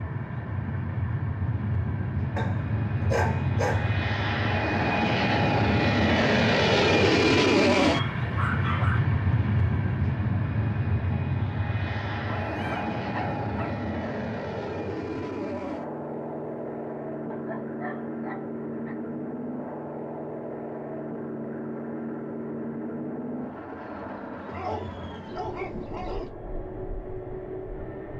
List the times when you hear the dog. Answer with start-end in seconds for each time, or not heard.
2.4-4.0, 7.9-9.0, 12.4-13.8, 17.3-18.9, 24.4-26.3.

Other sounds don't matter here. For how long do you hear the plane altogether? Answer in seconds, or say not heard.
28 s.